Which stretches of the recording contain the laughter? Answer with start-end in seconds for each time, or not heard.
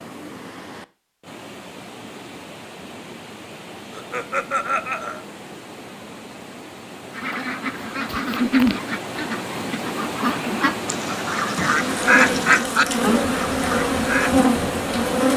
3.9-5.2, 8.2-8.8.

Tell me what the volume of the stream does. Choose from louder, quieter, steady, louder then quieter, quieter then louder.
louder.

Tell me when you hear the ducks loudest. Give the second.
12 s.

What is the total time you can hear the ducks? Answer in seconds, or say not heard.
7 s.